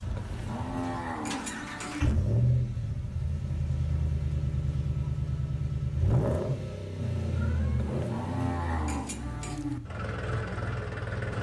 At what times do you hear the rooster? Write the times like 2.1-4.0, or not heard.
not heard.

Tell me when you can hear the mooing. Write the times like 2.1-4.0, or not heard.
0.1-2.1, 7.9-9.8.